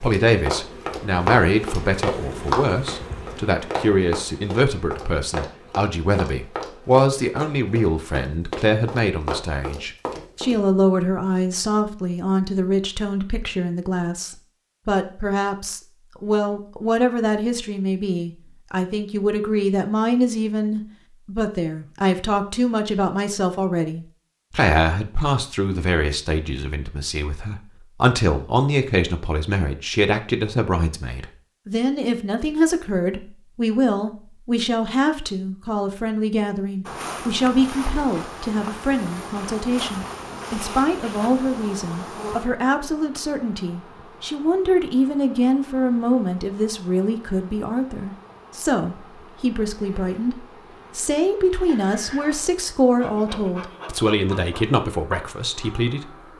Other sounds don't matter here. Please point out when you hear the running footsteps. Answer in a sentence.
You can hear the running footsteps from 0.0 to 10.6 s.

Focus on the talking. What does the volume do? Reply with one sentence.
The volume of the talking stays about the same.